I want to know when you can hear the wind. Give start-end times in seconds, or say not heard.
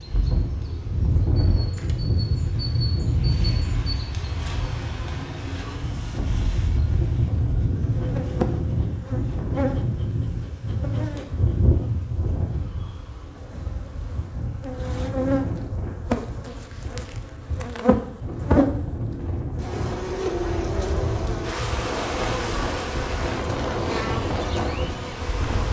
0.0-25.6.